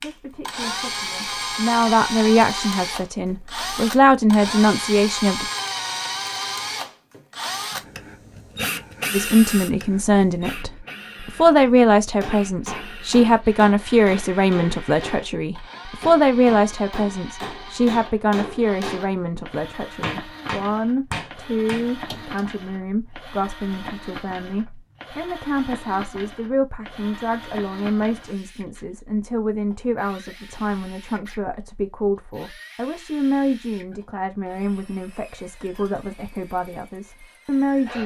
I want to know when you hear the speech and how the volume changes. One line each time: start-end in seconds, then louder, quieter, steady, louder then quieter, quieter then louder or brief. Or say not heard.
0.0-5.5 louder
9.1-38.0 quieter.